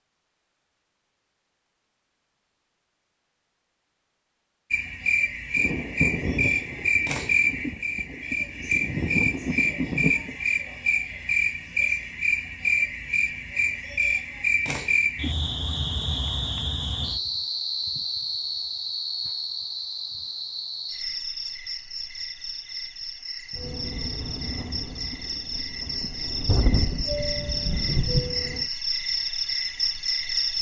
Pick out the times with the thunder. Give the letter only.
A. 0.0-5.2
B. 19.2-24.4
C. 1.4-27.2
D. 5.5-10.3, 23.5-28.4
D.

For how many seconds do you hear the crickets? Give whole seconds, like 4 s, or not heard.
26 s.